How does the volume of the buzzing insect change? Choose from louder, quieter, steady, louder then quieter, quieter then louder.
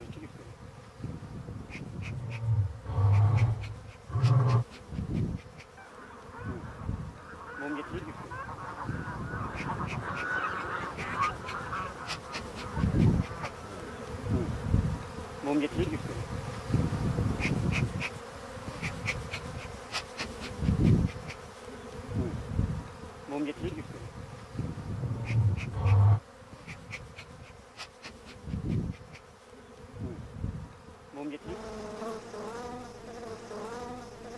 louder then quieter.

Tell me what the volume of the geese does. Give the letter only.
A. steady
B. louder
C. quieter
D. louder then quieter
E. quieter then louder
D.